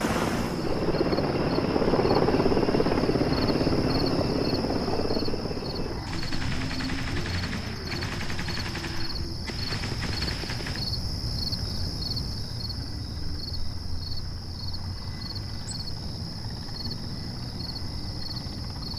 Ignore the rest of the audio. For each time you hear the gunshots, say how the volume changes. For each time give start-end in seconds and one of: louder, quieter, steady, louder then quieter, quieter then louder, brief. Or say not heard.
6.0-10.9 quieter then louder.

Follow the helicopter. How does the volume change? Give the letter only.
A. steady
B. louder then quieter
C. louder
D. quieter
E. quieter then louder
D.